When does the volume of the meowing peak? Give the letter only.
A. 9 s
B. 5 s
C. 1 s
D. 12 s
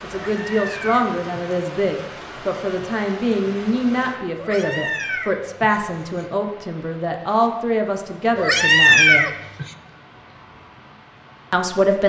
A.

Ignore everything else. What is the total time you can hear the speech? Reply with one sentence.
You can hear the speech for 10 seconds altogether.